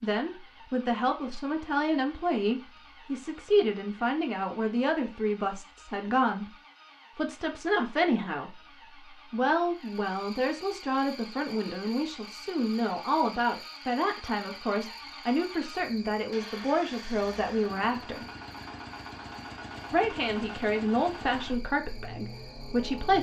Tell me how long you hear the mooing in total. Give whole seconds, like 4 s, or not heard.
not heard.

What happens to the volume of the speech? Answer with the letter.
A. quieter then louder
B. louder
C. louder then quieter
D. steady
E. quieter
D.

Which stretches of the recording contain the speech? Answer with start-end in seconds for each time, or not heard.
0.0-6.5, 7.2-18.2, 19.9-23.1.